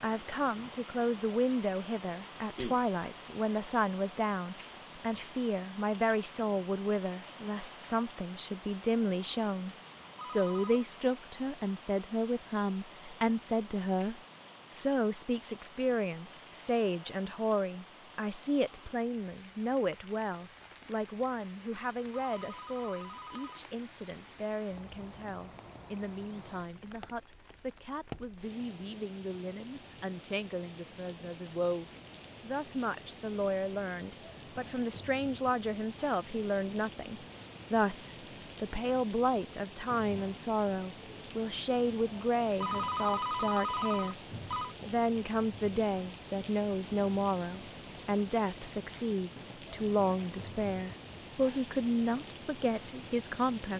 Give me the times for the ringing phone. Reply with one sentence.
You can hear the ringing phone from 10.2 to 10.8 s, from 22.1 to 23.6 s and from 42.6 to 44.8 s.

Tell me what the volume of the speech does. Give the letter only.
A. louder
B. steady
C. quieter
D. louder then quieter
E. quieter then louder
E.